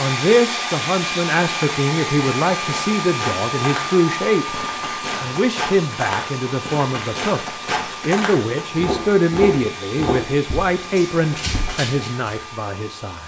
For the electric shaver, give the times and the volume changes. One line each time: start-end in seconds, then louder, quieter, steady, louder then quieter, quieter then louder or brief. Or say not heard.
not heard.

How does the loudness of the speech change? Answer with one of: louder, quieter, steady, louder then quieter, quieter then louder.
steady.